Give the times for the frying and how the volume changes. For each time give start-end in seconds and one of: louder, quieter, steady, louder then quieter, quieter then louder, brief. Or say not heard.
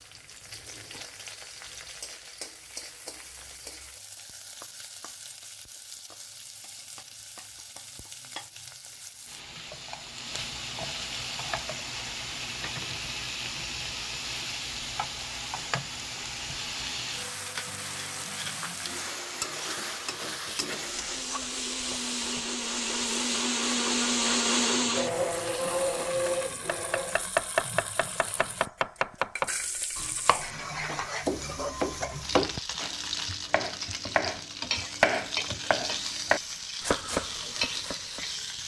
0.0-38.6 louder.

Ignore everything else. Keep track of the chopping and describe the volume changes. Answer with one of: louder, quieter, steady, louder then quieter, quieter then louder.
steady.